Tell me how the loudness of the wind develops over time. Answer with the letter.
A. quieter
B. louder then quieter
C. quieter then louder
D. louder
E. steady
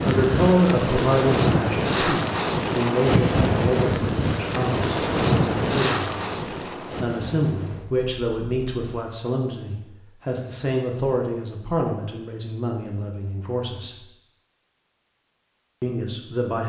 A.